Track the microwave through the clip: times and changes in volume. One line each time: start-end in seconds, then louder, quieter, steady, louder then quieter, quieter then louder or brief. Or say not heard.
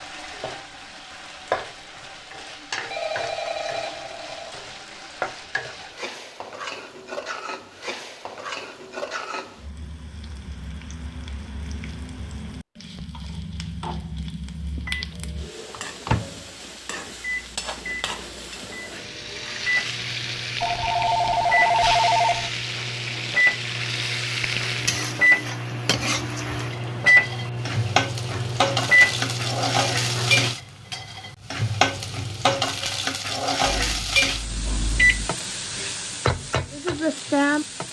14.6-30.6 louder
33.6-35.2 brief.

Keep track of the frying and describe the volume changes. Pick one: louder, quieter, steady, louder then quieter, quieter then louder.
louder.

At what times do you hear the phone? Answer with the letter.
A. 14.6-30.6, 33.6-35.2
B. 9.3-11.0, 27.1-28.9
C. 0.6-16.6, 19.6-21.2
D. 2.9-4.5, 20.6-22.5
D.